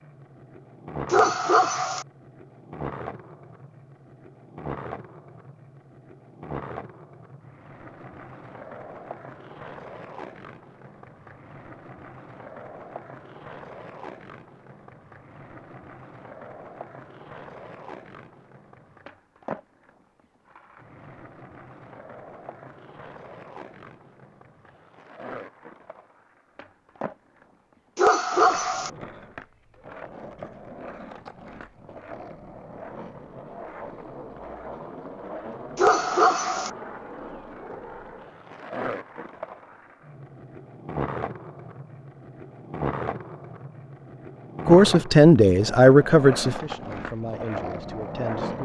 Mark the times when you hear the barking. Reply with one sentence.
The barking can be heard from 1.1 to 2.0 s, from 27.9 to 28.9 s and from 35.8 to 36.7 s.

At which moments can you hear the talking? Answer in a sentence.
You can hear the talking from 44.6 to 48.6 s.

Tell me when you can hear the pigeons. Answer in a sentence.
The pigeons can't be heard in this clip.